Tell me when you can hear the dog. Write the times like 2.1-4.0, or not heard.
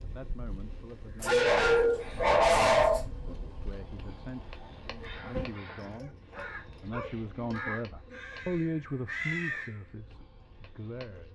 1.2-3.0, 5.9-7.2.